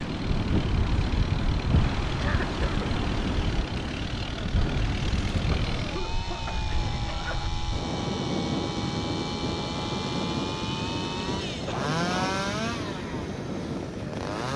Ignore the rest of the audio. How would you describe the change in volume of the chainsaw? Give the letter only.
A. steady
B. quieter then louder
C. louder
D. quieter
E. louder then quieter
C.